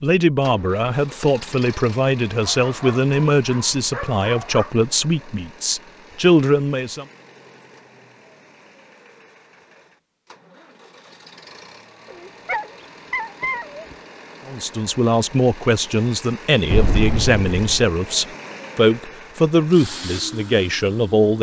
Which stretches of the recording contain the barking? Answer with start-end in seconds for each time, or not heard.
2.4-4.7, 12.1-13.9.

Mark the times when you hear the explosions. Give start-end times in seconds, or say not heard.
16.7-17.9.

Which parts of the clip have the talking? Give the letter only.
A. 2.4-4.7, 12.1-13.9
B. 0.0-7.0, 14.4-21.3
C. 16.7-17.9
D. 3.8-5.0
B.